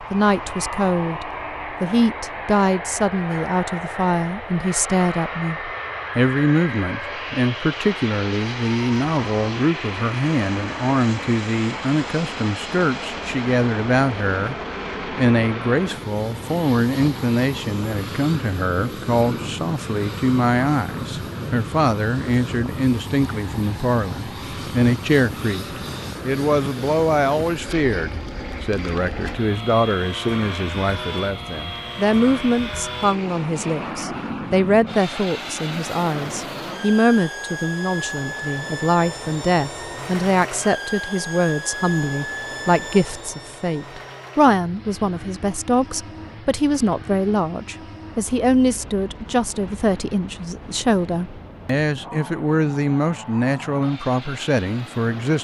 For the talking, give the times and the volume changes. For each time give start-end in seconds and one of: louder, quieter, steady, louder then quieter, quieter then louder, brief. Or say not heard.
0.0-55.3 steady.